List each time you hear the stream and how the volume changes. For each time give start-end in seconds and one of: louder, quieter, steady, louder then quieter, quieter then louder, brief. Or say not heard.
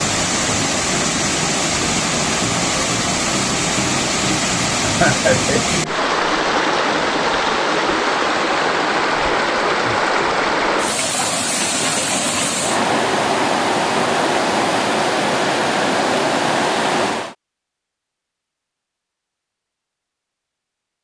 0.0-17.4 steady.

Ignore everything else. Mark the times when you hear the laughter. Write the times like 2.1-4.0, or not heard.
4.8-5.8.